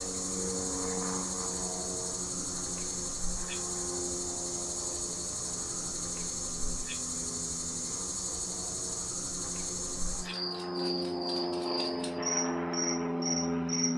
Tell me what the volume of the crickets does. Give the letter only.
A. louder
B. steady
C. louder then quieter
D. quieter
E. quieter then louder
B.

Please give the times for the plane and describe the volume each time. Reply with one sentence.
The plane can be heard from 0.0 to 13.9 s, getting quieter then louder.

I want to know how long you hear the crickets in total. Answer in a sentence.
The crickets can be heard for 14 seconds in total.